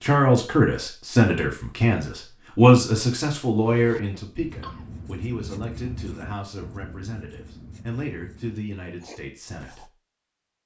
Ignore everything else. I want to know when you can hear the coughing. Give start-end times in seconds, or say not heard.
4.0-4.9.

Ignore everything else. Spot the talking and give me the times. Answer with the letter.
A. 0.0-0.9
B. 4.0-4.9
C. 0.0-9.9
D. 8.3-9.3
C.